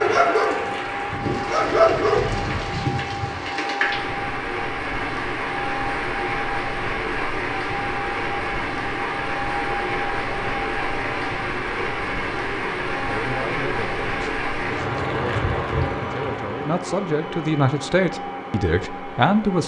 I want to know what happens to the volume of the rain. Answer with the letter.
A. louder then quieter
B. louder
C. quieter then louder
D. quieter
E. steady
E.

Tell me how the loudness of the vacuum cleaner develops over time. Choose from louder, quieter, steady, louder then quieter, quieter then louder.
steady.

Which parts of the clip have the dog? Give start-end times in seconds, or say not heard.
0.0-2.9.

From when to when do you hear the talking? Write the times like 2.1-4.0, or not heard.
13.1-19.6.